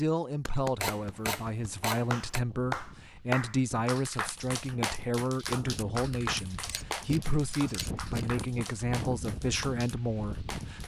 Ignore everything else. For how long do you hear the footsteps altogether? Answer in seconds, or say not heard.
not heard.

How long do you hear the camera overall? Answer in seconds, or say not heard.
3 s.